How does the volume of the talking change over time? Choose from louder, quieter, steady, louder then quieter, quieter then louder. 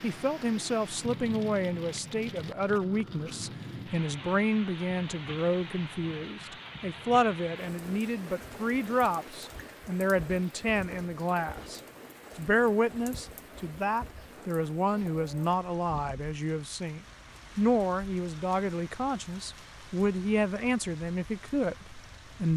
steady.